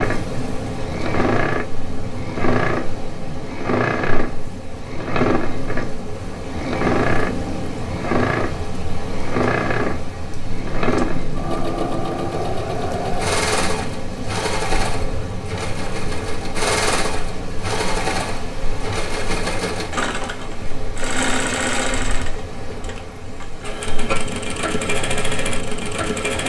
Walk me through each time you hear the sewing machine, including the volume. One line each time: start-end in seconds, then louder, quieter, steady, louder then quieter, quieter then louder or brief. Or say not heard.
0.0-26.4 steady.